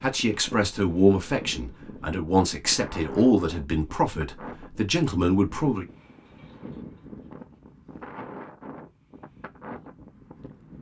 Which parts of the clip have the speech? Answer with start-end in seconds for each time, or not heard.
0.0-5.8.